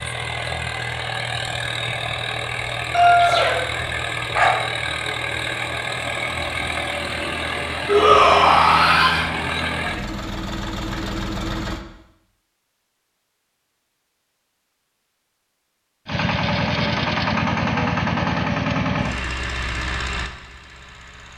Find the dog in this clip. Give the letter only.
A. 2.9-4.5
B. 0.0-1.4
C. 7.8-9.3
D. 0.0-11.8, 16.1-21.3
A.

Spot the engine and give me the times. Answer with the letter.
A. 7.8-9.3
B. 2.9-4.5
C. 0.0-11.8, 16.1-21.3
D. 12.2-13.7
C.